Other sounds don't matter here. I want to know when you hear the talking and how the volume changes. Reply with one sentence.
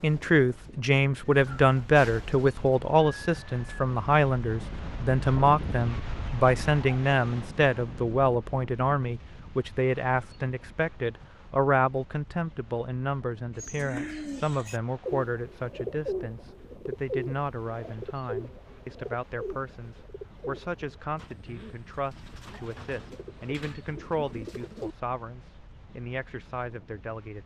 You can hear the talking from 0.0 to 27.4 s, getting quieter.